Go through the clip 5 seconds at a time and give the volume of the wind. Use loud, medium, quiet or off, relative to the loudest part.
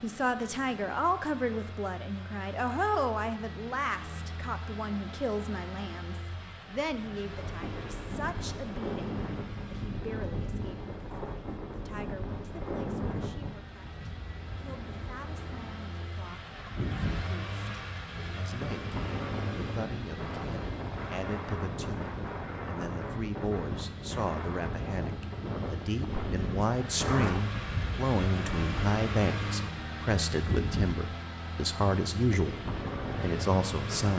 off, loud, loud, loud, loud, loud, loud.